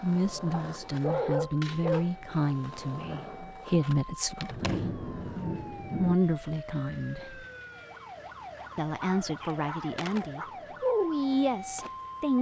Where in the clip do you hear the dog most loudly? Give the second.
1 s.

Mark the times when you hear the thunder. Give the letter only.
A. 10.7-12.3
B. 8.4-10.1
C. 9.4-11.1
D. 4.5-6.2
D.